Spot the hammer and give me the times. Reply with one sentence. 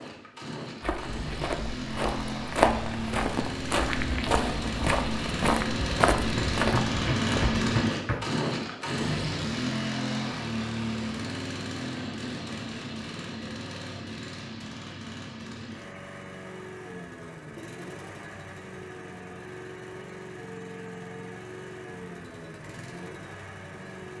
The hammer can be heard from 6.3 to 8.2 s.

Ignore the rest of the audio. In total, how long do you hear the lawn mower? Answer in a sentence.
The lawn mower can be heard for 24 seconds in total.